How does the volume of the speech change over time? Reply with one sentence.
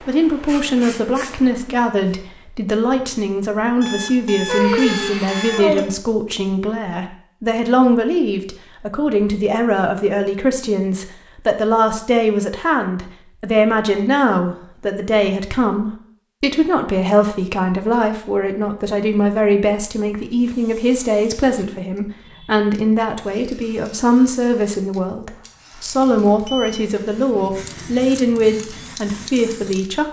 The loudness of the speech stays about the same.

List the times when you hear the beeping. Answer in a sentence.
You can hear the beeping from 3.8 to 5.8 s and from 25.4 to 27.0 s.